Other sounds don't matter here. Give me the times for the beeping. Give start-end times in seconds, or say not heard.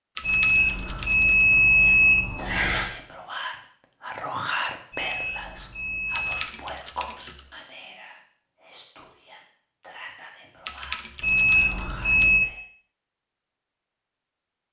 0.2-2.9, 4.9-6.5, 11.2-12.4.